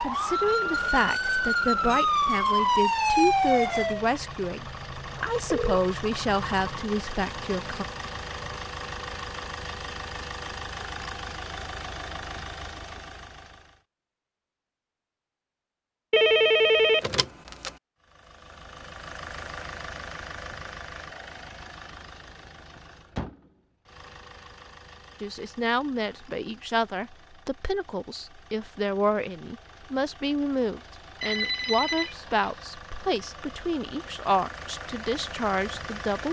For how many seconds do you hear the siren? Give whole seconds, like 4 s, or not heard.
4 s.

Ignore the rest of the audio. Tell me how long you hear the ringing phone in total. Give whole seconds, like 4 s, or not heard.
4 s.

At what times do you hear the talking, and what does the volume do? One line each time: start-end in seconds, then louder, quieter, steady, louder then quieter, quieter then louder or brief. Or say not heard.
0.0-7.8 steady
25.2-36.2 steady.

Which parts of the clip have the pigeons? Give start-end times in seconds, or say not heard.
not heard.